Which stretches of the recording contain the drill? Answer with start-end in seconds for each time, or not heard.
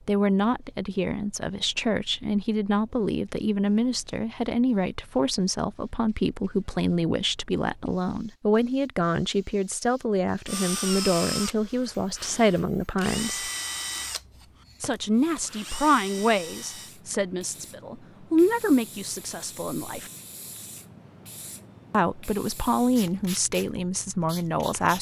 10.4-16.9.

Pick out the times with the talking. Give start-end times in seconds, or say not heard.
0.1-13.5, 14.8-20.1, 21.9-24.9.